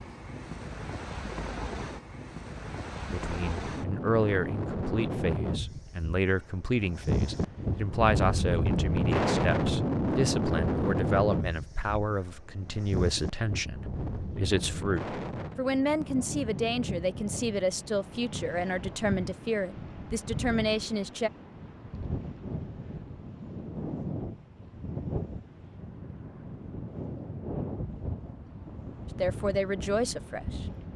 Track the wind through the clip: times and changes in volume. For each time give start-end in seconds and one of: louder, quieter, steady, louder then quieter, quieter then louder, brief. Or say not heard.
0.0-30.9 louder then quieter.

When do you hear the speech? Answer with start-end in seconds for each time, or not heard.
3.0-21.3, 29.1-30.6.